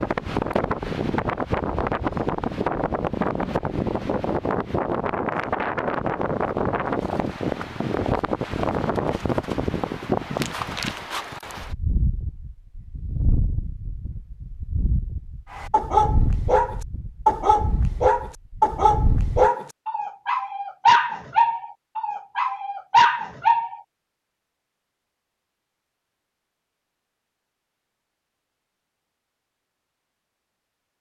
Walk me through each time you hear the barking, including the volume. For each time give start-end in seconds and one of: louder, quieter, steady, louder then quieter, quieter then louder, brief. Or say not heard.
15.5-23.8 steady.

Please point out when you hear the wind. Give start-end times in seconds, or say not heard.
0.0-19.5.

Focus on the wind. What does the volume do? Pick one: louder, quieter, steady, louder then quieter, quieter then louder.
quieter.